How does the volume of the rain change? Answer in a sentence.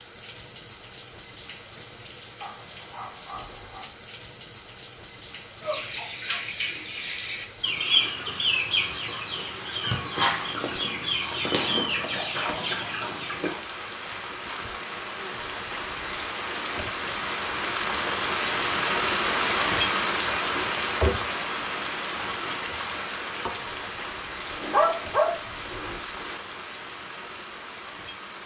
The loudness of the rain goes up, then down.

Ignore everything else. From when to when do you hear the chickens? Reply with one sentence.
The chickens can be heard from 5.6 to 13.6 s.